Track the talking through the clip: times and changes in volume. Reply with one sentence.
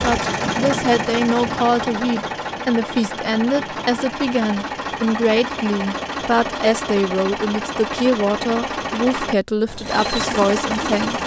You can hear the talking from 0.0 to 11.2 s, at a steady volume.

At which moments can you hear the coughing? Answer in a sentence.
The coughing can't be heard in this clip.